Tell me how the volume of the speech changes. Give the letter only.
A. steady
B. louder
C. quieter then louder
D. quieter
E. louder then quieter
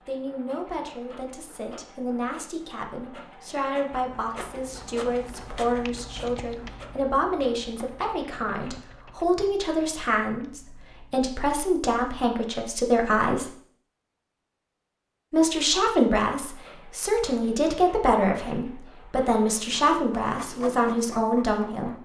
B.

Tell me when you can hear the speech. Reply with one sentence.
The speech can be heard from 0.1 to 13.5 s and from 15.3 to 21.9 s.